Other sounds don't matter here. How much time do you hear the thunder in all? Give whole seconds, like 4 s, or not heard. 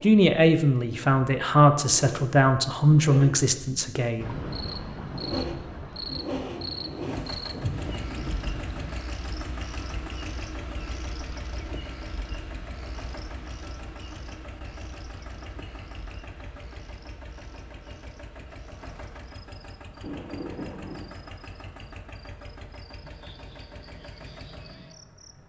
4 s.